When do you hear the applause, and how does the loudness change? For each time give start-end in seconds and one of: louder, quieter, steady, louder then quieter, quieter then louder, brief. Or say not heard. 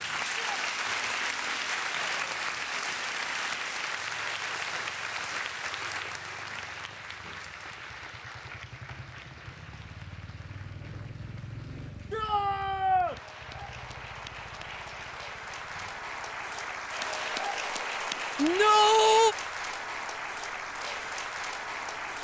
0.0-22.1 quieter then louder.